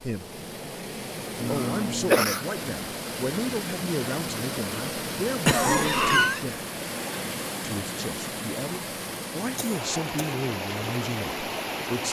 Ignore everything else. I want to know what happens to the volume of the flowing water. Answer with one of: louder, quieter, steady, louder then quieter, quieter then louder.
steady.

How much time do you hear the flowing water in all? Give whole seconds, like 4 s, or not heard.
12 s.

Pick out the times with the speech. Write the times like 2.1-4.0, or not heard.
0.0-0.4, 1.4-6.7, 7.6-12.0.